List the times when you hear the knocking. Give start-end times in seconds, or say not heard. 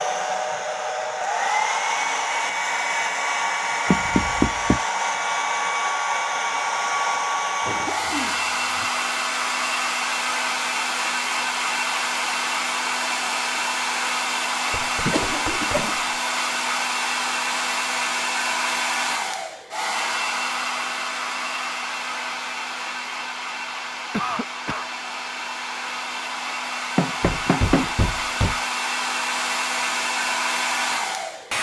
3.9-4.8, 14.7-16.2, 26.9-28.6.